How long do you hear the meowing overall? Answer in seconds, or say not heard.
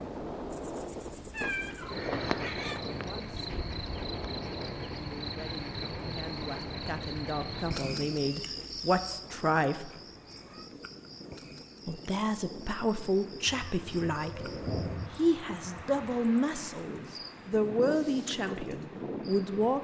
5 s.